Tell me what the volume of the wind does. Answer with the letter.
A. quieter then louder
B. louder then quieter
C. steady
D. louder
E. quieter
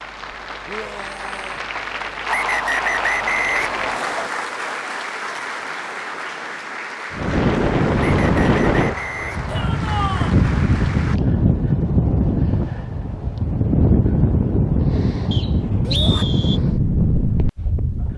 C.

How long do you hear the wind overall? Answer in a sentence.
You can hear the wind for 11 seconds altogether.